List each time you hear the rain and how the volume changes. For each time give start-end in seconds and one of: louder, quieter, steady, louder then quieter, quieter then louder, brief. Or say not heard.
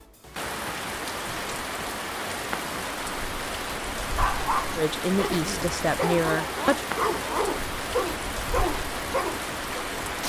0.0-10.2 steady.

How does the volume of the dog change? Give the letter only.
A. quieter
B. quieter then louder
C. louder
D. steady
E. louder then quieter
D.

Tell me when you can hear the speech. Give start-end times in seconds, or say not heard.
4.8-6.8.